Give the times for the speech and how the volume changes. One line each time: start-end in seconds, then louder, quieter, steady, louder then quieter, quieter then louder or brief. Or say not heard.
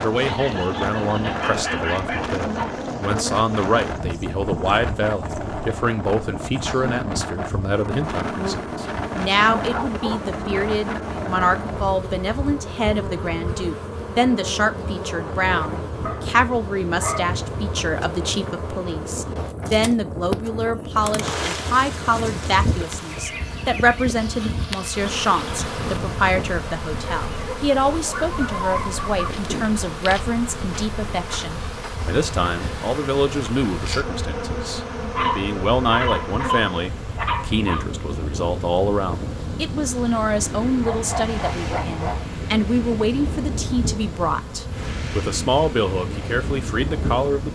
0.0-47.5 steady.